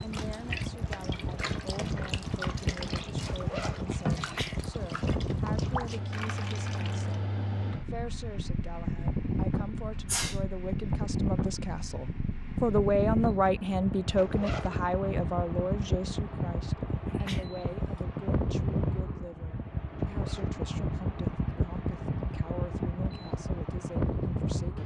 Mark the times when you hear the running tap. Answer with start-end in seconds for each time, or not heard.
0.0-7.2.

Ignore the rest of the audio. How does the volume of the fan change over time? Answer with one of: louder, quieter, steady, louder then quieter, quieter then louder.
steady.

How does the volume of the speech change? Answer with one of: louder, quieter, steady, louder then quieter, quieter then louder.
louder then quieter.